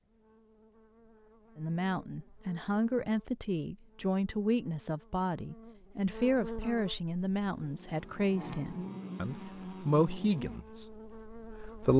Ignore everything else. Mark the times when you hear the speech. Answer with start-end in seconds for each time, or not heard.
1.6-11.9.